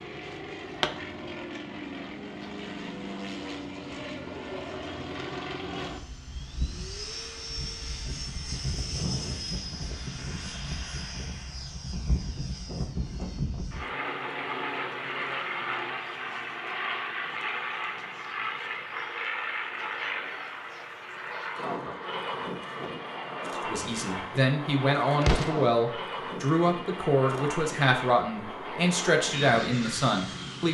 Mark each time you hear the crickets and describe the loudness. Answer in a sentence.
The crickets can't be heard in this clip.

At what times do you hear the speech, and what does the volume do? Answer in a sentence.
The speech can be heard from 23.6 to 30.6 s, at a steady volume.